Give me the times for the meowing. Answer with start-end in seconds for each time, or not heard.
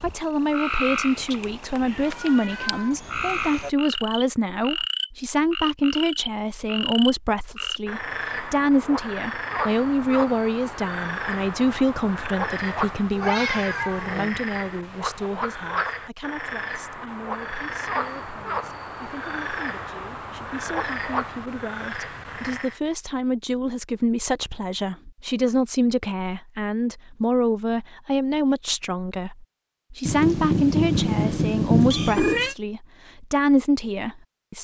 1.3-3.0, 13.1-14.3, 30.1-32.5.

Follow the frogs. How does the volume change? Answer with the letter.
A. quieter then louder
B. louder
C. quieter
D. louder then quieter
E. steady
E.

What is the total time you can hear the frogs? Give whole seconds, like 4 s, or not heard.
23 s.